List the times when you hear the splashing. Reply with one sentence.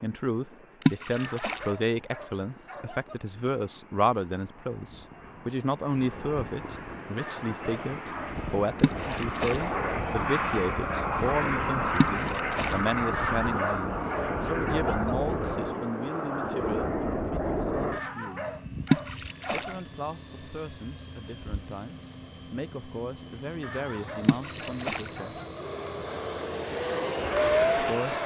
The splashing can be heard from 0.8 to 1.6 s, from 8.8 to 9.7 s, from 11.9 to 12.8 s, from 18.9 to 19.7 s and from 24.2 to 25.1 s.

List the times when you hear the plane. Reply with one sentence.
The plane can be heard from 0.0 to 28.2 s.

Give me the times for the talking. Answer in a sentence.
The talking can be heard from 0.0 to 18.5 s, from 19.5 to 25.4 s and from 27.8 to 28.2 s.